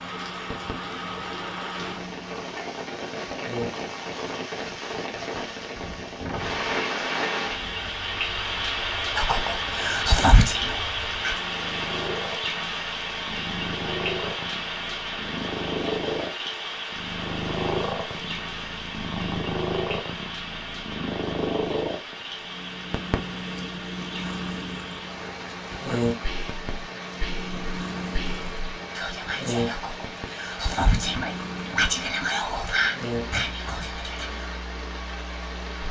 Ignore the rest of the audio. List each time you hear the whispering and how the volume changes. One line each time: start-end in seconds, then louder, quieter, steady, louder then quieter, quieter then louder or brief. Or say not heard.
9.2-11.4 brief
25.9-34.5 louder.